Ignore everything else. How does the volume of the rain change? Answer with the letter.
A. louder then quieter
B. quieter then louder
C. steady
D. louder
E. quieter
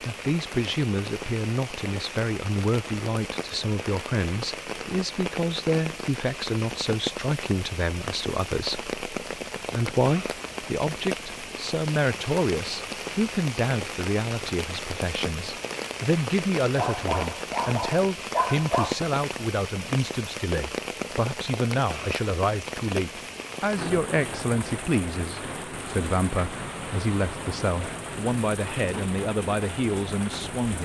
C.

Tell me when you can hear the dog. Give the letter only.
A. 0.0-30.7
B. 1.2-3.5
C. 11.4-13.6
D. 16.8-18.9
D.